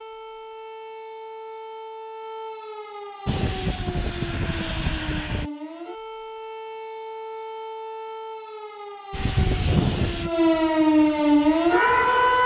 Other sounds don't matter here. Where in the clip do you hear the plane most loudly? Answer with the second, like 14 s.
10 s.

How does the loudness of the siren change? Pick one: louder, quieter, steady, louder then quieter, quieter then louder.
louder.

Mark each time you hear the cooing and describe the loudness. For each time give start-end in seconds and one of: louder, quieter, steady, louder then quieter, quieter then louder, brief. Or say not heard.
not heard.